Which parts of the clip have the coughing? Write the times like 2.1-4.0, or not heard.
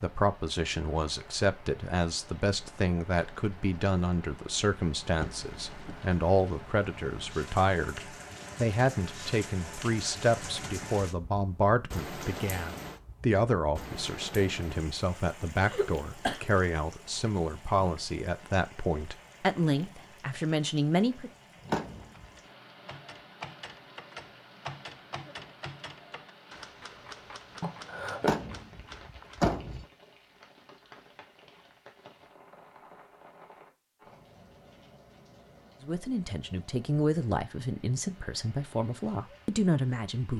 15.6-16.4, 27.6-28.4.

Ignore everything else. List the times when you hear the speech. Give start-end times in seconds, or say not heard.
0.0-21.3, 35.8-40.3.